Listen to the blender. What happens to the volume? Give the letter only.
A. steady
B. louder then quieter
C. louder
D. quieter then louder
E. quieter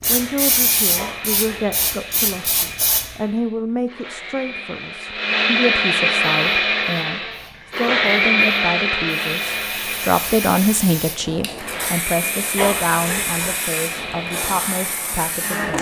B.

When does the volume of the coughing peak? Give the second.
13 s.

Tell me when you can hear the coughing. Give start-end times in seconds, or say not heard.
0.9-1.8, 12.6-13.6.